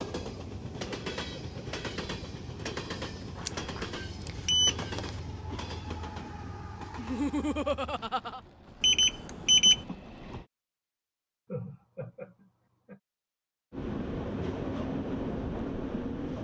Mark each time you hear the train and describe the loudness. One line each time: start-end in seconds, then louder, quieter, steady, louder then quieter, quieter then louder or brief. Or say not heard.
0.0-10.4 quieter
13.7-16.4 brief.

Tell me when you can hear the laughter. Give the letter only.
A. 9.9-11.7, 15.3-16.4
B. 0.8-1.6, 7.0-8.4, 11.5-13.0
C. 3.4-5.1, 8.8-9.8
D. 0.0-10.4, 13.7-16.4
B.